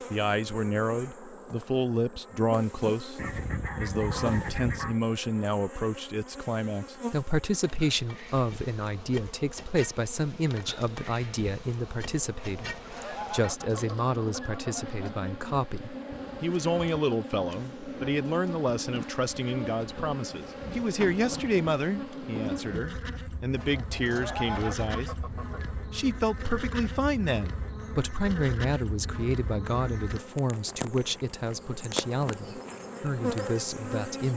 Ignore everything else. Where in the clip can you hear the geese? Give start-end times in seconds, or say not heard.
3.1-5.0, 12.6-14.9, 23.6-25.8.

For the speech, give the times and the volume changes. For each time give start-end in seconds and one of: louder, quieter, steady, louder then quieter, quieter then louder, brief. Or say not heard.
0.1-34.3 steady.